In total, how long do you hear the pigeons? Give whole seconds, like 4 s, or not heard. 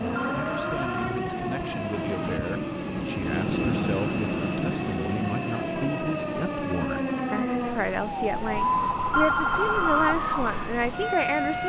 not heard.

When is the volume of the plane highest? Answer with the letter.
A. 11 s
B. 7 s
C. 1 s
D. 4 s
D.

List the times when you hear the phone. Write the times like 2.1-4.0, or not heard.
0.1-1.2, 9.1-10.2.